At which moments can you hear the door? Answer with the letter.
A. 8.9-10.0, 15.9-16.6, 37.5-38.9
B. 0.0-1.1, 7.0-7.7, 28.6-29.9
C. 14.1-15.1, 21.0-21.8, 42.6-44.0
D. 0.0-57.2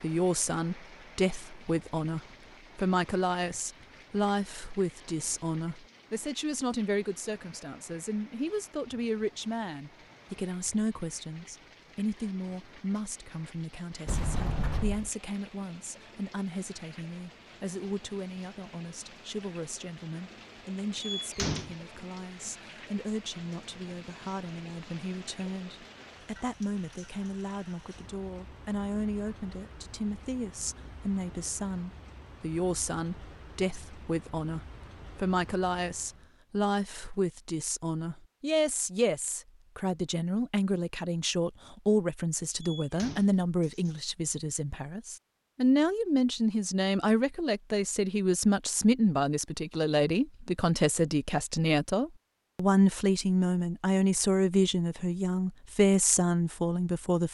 C.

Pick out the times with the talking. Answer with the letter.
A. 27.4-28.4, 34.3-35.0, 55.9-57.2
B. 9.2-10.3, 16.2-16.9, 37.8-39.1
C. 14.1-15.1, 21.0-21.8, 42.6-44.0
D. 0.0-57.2
D.